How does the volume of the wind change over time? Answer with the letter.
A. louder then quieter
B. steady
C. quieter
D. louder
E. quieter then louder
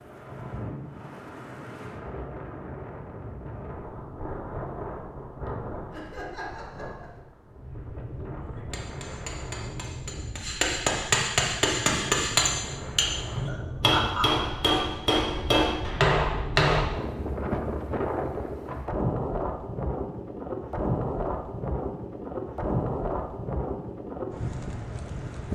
D.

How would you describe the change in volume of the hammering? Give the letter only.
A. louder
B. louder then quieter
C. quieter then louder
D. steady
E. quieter
A.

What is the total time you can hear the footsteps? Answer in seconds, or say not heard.
not heard.